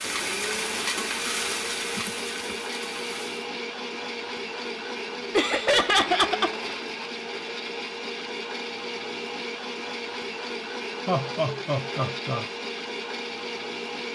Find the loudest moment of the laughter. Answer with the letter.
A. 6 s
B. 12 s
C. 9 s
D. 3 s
A.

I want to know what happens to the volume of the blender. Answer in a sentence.
The loudness of the blender stays about the same.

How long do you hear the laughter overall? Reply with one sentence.
You can hear the laughter for 3 seconds altogether.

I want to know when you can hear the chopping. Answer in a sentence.
You can't hear the chopping here.